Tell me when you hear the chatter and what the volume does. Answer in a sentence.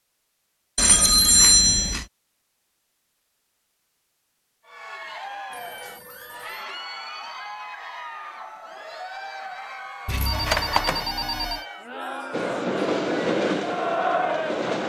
The chatter can be heard from 4.7 to 14.8 s, getting louder.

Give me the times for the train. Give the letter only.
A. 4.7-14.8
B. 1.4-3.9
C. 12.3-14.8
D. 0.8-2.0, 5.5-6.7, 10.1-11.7
C.